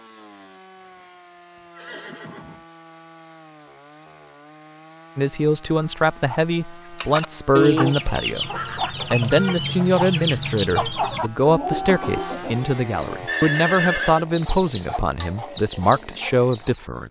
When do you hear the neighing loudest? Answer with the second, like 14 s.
14 s.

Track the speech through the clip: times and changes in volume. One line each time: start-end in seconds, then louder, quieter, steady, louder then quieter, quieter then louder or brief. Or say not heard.
5.2-17.0 steady.